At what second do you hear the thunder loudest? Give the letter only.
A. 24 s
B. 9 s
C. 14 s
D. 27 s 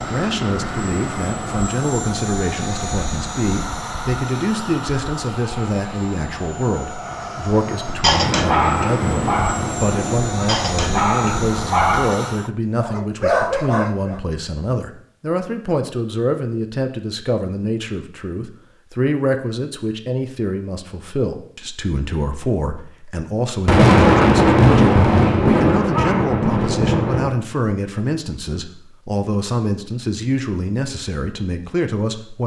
A.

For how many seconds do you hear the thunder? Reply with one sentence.
You can hear the thunder for 7 seconds altogether.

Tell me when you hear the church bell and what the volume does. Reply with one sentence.
You can't hear the church bell here.